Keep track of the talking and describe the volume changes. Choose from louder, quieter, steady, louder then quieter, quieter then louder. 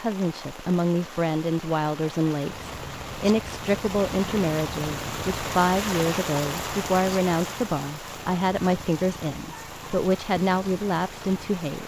steady.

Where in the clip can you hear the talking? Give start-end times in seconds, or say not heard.
0.0-11.8.